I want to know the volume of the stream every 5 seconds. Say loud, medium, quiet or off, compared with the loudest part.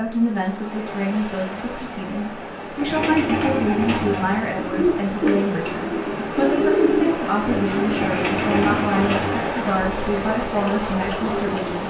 medium, loud, loud.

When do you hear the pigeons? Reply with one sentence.
The pigeons can be heard from 2.8 to 9.5 s.